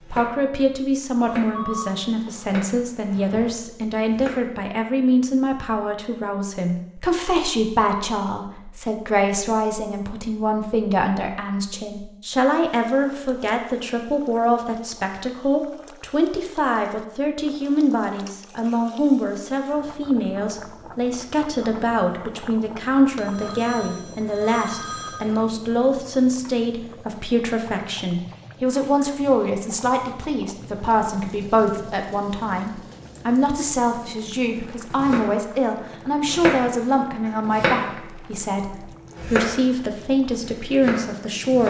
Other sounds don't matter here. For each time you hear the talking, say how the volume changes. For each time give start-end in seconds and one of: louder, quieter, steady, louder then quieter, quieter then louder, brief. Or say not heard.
0.1-41.6 steady.